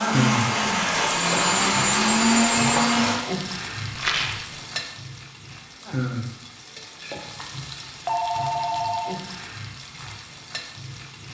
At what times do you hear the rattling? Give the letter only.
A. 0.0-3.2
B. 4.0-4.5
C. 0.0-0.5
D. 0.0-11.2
B.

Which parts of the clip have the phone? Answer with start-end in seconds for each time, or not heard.
0.6-3.0, 8.1-9.2.